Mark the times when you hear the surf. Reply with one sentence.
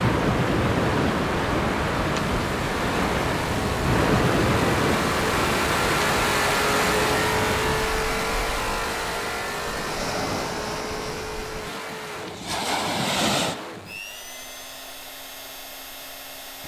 You can hear the surf from 0.0 to 13.8 s.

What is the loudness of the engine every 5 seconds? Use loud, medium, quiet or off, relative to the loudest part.
medium, loud, medium, quiet.